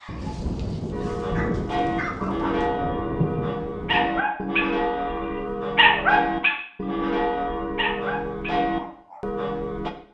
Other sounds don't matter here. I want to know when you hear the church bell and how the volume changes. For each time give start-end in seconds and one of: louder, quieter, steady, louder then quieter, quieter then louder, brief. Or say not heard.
0.9-9.9 steady.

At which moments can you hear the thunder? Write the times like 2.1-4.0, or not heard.
0.1-4.1.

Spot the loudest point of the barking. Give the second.
6 s.